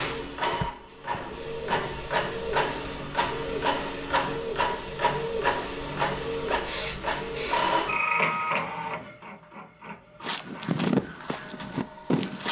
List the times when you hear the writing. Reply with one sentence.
You can't hear the writing here.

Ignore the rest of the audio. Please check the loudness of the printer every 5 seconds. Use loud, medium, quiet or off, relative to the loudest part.
loud, loud, quiet.